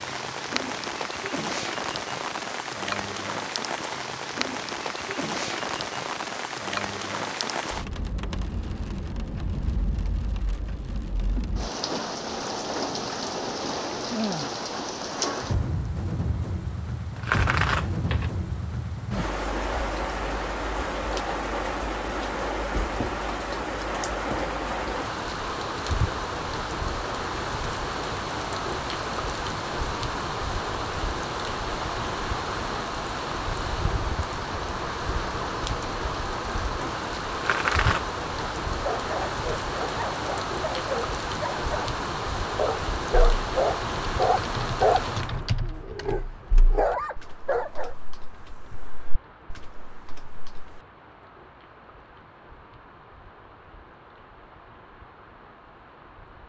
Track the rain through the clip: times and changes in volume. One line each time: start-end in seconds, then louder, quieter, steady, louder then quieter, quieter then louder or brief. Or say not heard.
0.0-56.4 quieter.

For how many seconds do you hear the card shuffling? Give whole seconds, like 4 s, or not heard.
2 s.